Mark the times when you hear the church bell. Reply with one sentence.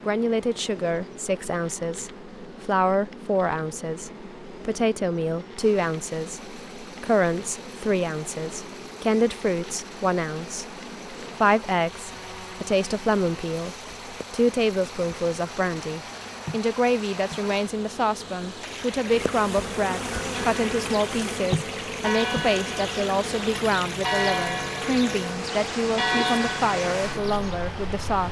You can hear the church bell from 20.1 to 27.7 s.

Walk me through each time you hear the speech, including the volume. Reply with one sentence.
The speech can be heard from 0.1 to 28.2 s, at a steady volume.